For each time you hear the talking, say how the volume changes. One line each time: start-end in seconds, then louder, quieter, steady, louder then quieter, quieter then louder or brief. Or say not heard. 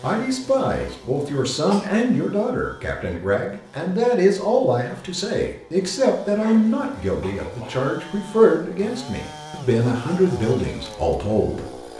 0.0-11.9 steady.